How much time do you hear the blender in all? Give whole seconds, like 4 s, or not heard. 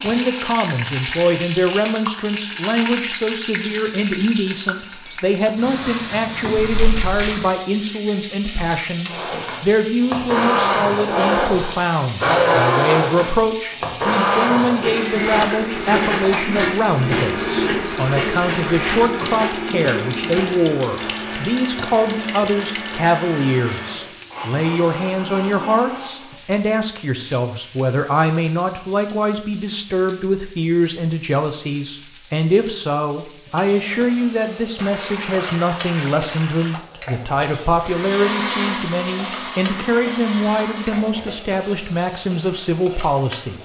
21 s.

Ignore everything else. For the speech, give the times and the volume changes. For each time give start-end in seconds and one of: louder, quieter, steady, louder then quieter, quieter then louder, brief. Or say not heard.
0.0-43.6 steady.